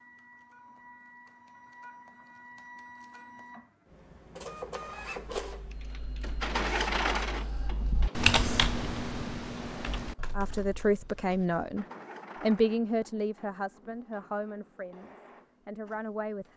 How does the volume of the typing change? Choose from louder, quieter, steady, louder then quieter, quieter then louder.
louder then quieter.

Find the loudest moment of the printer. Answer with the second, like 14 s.
7 s.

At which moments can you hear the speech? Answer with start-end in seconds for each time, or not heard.
10.3-16.5.